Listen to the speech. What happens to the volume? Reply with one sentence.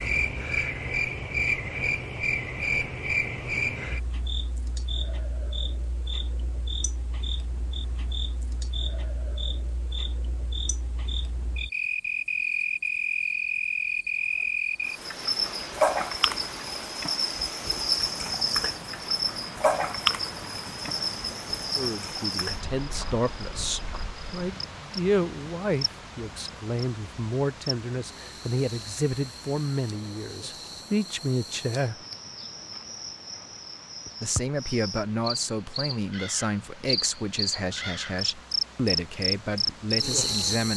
The loudness of the speech stays about the same.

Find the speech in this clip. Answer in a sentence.
The speech can be heard from 21.8 to 32.0 s and from 34.2 to 40.7 s.